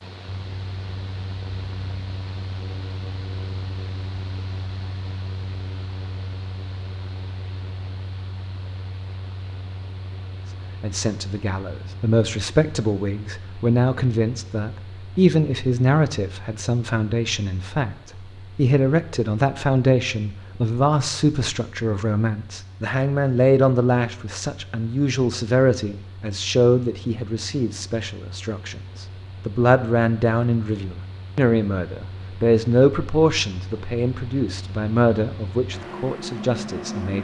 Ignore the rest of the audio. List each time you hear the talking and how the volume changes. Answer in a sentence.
The talking can be heard from 10.8 to 37.1 s, at a steady volume.